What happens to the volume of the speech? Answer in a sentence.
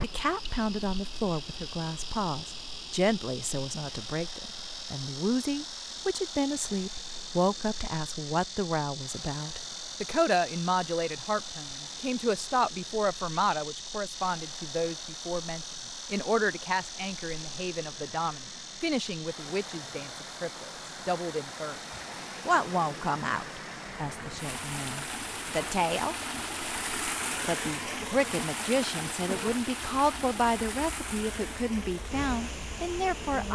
The loudness of the speech stays about the same.